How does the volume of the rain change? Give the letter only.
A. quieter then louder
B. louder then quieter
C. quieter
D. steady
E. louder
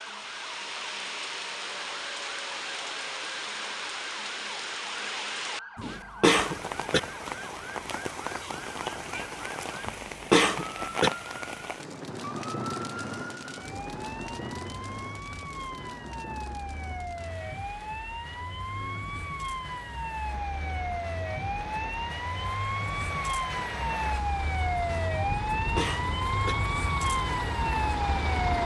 A.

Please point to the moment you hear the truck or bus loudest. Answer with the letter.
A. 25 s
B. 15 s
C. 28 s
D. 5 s
C.